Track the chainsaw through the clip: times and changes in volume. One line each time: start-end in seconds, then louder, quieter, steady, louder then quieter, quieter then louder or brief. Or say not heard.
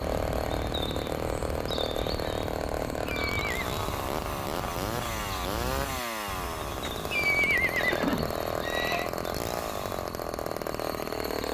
0.0-11.4 steady.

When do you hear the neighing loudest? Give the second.
7 s.